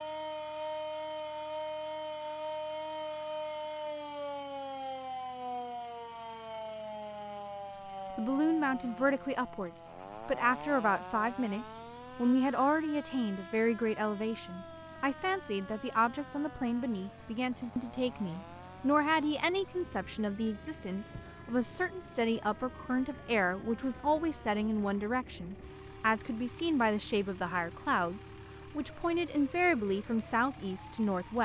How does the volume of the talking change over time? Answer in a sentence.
The loudness of the talking stays about the same.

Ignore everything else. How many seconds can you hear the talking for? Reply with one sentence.
The talking can be heard for 23 seconds in total.